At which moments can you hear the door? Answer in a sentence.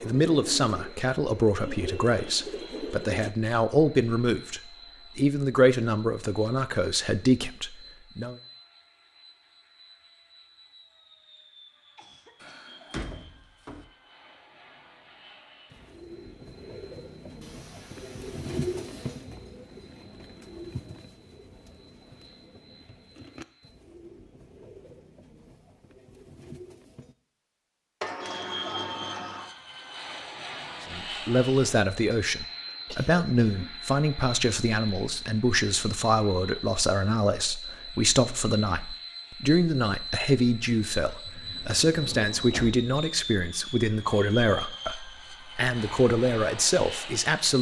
The door can be heard from 12.4 to 13.8 s, from 28.0 to 29.5 s and from 41.2 to 42.8 s.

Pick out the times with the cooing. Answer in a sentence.
You can hear the cooing from 0.0 to 3.4 s and from 15.7 to 27.1 s.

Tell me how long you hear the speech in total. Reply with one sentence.
The speech can be heard for 25 seconds in total.